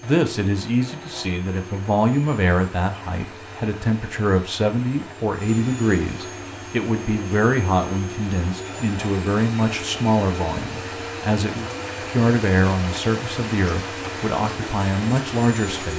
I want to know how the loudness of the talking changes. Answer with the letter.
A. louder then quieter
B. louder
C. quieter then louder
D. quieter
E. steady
E.